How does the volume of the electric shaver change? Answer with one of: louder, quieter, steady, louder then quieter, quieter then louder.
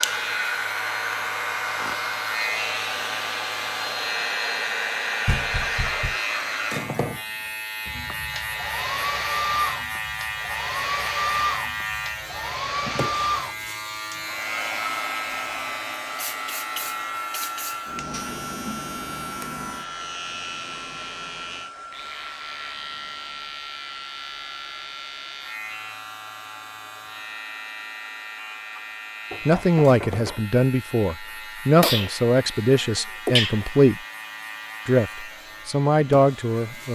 quieter.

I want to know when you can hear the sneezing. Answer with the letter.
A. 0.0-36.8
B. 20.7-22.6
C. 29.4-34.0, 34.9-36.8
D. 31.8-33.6
D.